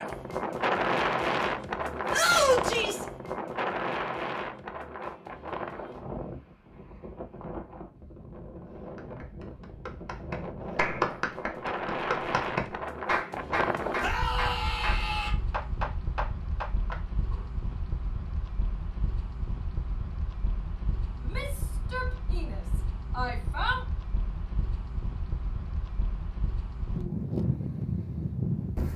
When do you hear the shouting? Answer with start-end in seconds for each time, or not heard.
2.1-3.0, 14.0-15.3, 21.2-23.8.